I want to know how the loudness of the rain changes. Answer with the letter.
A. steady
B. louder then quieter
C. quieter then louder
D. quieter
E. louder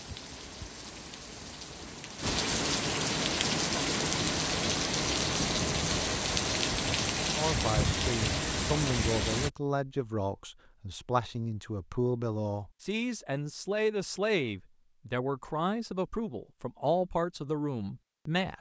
E.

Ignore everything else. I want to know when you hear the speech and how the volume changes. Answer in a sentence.
The speech can be heard from 7.3 to 18.5 s, at a steady volume.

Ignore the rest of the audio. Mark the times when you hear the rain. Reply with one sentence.
You can hear the rain from 0.0 to 9.5 s.